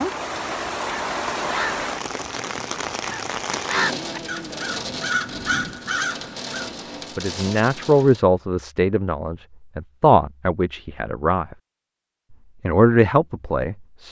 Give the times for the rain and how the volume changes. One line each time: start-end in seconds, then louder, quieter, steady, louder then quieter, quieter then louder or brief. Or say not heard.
0.0-8.2 quieter.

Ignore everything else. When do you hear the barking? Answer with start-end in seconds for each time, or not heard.
not heard.